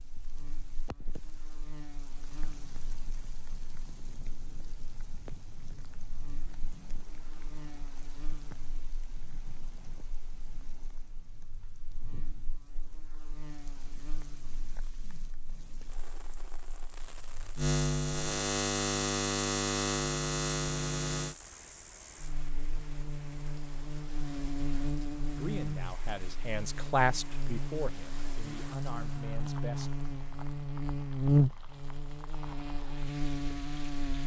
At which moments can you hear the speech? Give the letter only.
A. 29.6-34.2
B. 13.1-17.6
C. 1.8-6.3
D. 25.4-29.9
D.